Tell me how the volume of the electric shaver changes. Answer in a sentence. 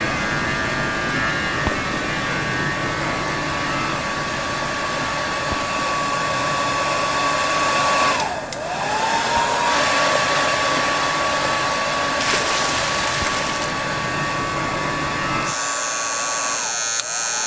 The volume of the electric shaver goes down, then up.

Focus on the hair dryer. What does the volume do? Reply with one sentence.
The volume of the hair dryer goes up, then down.